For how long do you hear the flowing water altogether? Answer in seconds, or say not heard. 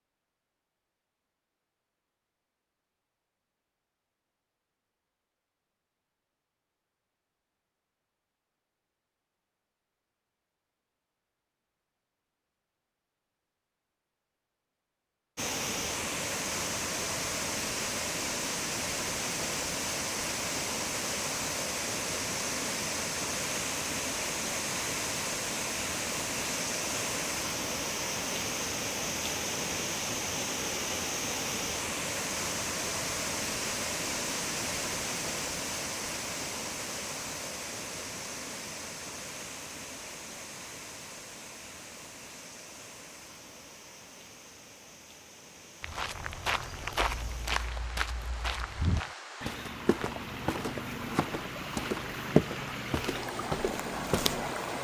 39 s.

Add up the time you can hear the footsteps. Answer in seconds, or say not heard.
9 s.